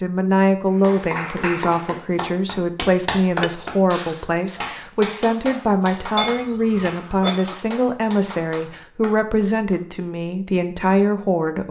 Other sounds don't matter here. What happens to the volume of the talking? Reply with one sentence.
The volume of the talking stays about the same.